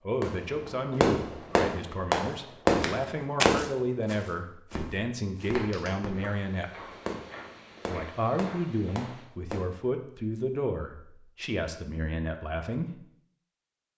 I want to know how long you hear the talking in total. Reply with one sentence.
You can hear the talking for 12 seconds altogether.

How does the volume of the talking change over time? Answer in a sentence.
The volume of the talking stays about the same.